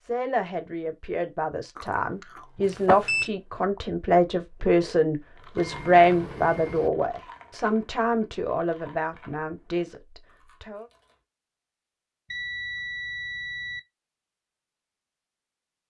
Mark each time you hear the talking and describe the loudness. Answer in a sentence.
You can hear the talking from 0.0 to 10.8 s, getting louder then quieter.